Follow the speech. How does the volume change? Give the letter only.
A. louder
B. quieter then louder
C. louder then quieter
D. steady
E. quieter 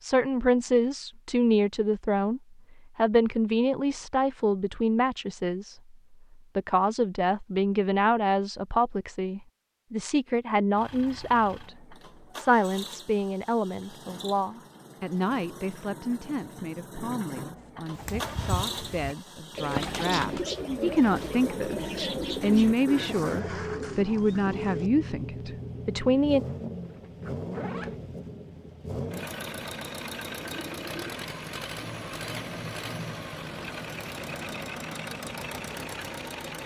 B.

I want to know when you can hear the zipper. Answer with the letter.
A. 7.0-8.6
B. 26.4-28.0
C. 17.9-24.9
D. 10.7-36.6
B.